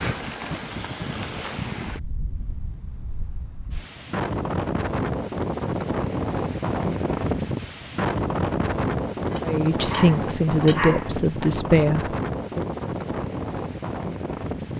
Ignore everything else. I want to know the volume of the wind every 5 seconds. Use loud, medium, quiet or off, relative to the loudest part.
medium, loud, loud.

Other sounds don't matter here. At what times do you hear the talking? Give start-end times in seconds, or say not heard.
9.4-12.7.